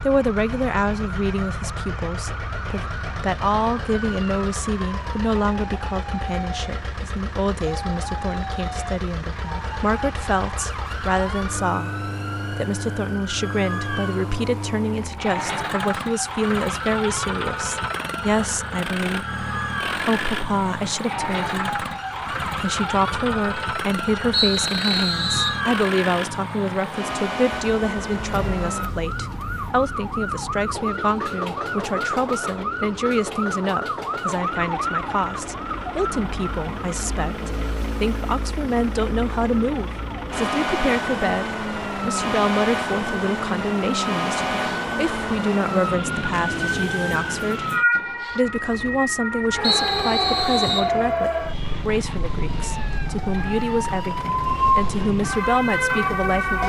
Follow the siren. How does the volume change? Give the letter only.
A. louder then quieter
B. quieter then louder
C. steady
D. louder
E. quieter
D.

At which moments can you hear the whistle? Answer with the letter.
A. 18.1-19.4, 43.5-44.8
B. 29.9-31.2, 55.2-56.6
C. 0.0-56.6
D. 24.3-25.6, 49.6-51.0
D.